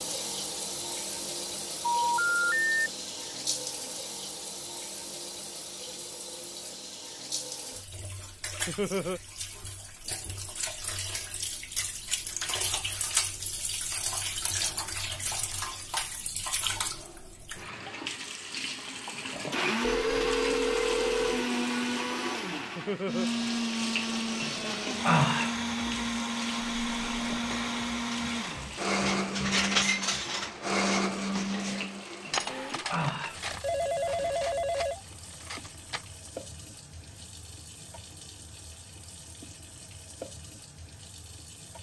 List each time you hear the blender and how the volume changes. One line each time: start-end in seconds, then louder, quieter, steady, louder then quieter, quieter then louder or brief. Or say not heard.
19.4-32.9 steady.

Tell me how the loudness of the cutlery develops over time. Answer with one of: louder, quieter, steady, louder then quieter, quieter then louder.
louder then quieter.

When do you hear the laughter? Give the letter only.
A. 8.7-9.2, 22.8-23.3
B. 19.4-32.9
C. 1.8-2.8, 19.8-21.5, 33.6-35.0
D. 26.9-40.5
A.